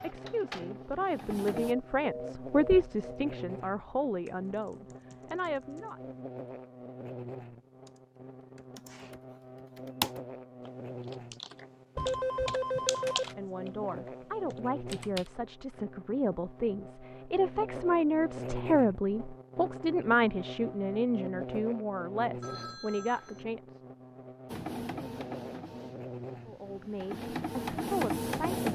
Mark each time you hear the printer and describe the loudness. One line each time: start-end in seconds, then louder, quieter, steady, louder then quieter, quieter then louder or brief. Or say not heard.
0.0-1.8 brief
24.4-28.7 quieter then louder.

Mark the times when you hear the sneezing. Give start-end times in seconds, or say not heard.
8.7-9.2.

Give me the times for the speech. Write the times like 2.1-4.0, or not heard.
0.0-6.0, 13.0-23.6, 26.4-28.7.